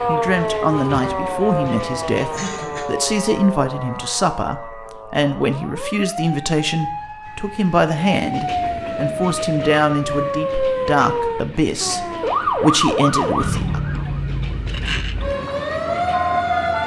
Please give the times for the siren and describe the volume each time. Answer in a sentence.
You can hear the siren from 0.0 to 16.8 s, getting quieter then louder.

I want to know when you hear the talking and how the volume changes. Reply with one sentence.
The talking can be heard from 0.1 to 14.1 s, at a steady volume.